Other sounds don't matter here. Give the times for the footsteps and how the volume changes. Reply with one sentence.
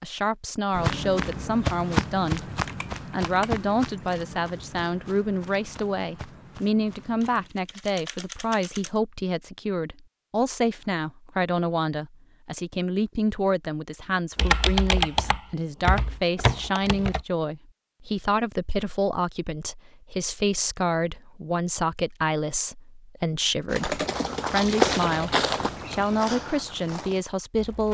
The footsteps can be heard from 0.7 to 7.5 s, getting quieter; and from 23.6 to 27.8 s, getting louder then quieter.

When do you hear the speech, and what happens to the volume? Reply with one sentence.
You can hear the speech briefly from 0.0 to 2.5 s; and from 3.1 to 27.8 s, at a steady volume.